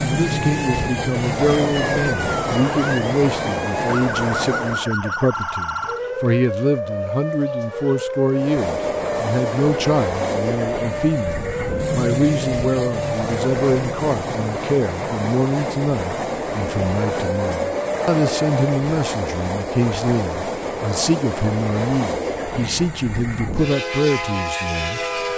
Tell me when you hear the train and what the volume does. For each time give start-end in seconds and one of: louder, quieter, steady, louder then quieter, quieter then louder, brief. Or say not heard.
0.0-4.9 steady
8.3-25.3 steady.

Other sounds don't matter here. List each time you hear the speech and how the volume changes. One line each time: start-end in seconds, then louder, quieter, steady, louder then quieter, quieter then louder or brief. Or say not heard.
0.0-25.2 steady.